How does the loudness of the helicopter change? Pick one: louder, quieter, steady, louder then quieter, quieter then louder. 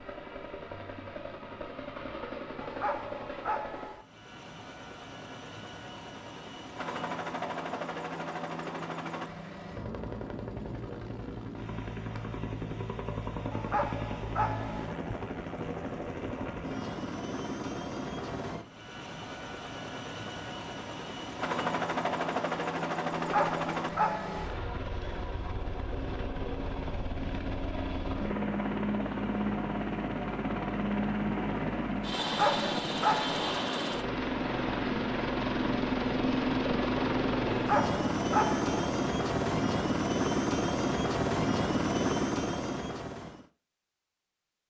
louder.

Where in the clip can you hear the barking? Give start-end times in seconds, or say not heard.
2.6-4.0, 13.5-14.9, 23.1-24.6, 32.2-33.5, 37.5-38.7.